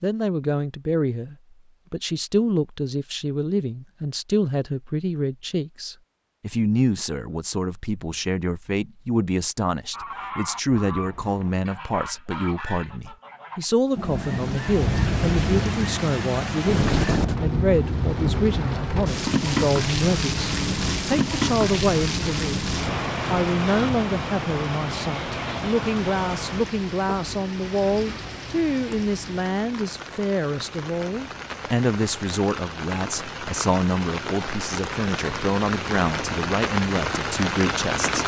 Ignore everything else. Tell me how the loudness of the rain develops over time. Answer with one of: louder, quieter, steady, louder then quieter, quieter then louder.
quieter then louder.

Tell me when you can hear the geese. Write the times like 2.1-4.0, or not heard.
9.9-17.3.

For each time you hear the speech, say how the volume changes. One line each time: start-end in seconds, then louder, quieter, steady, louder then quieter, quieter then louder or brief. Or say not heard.
0.0-22.6 steady
23.3-38.2 steady.